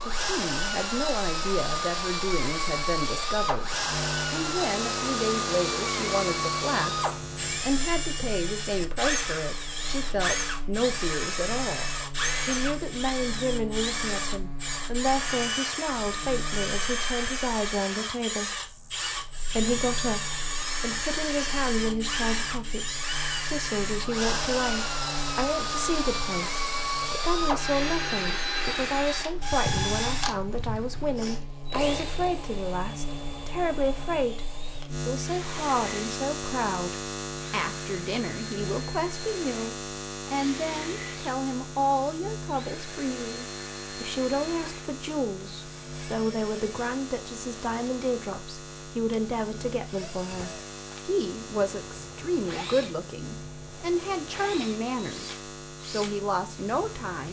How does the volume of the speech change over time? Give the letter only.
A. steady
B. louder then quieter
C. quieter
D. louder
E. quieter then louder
A.